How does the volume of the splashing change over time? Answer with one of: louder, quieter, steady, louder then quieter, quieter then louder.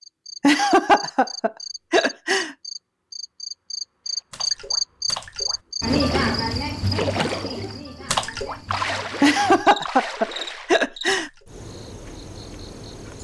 louder then quieter.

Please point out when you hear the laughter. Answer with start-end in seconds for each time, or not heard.
0.4-2.5, 9.2-11.3.